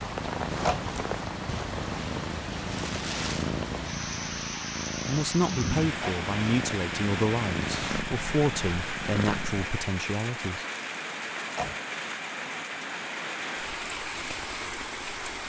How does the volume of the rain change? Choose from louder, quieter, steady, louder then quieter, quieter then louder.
steady.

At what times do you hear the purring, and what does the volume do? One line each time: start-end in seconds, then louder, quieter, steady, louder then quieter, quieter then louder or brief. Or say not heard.
0.0-9.7 steady.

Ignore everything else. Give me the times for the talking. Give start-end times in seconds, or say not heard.
5.0-10.7.